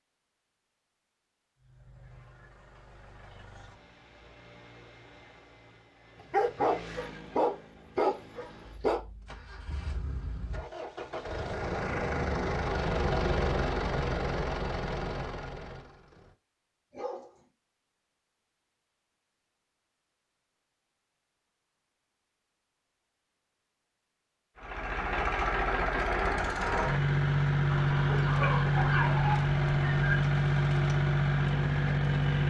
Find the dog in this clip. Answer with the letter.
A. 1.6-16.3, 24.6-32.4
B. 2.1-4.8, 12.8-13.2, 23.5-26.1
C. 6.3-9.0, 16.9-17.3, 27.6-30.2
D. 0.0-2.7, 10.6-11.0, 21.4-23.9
C.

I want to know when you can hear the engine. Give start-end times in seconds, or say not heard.
1.6-16.3, 24.6-32.4.